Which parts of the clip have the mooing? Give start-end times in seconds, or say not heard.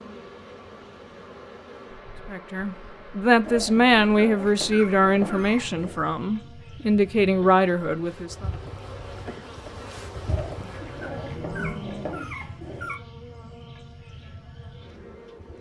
10.7-12.2.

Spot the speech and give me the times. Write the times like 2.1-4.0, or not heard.
2.3-8.4.